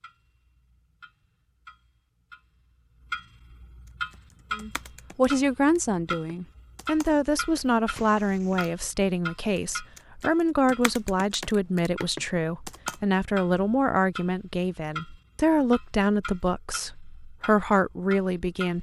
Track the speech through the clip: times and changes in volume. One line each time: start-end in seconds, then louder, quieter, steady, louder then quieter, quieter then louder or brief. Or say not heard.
4.5-18.7 steady.